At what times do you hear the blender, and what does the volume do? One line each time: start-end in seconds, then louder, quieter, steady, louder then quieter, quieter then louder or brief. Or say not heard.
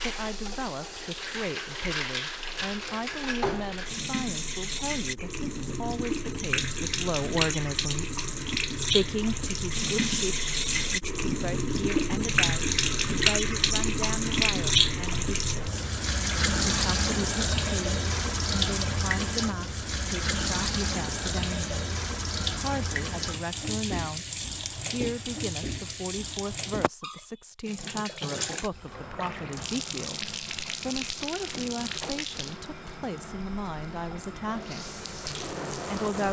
not heard.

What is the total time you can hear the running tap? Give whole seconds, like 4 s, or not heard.
36 s.